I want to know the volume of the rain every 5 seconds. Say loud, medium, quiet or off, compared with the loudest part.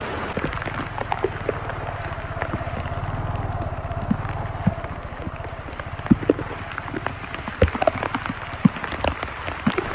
medium, loud.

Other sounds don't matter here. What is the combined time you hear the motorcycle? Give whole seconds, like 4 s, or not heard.
10 s.